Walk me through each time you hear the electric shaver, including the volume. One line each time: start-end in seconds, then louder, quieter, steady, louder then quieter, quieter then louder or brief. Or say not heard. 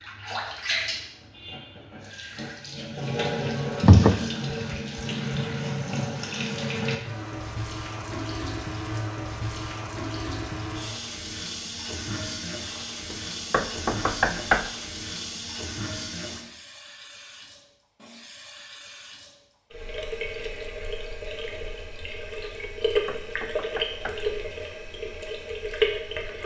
not heard.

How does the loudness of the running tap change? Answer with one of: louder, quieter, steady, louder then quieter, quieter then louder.
quieter then louder.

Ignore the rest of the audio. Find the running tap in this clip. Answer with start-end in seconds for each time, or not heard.
0.0-26.4.